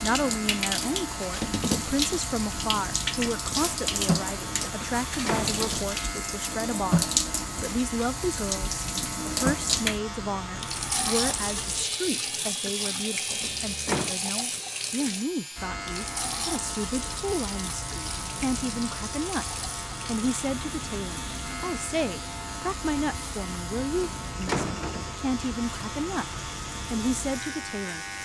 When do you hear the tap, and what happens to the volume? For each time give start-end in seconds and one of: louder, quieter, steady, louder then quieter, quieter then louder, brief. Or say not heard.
0.0-28.2 quieter.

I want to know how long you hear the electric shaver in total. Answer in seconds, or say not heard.
28 s.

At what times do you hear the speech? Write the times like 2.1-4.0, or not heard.
0.0-28.1.